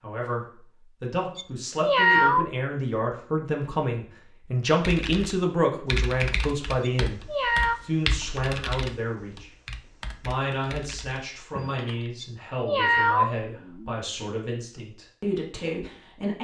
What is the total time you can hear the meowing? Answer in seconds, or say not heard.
4 s.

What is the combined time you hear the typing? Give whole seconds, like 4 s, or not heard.
7 s.